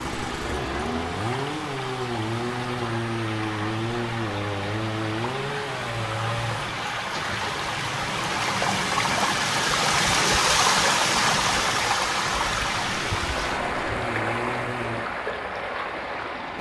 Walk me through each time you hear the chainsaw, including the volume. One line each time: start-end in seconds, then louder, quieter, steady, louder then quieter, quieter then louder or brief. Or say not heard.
0.0-6.9 steady
12.8-15.2 brief.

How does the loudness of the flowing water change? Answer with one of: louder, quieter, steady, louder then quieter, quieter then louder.
louder then quieter.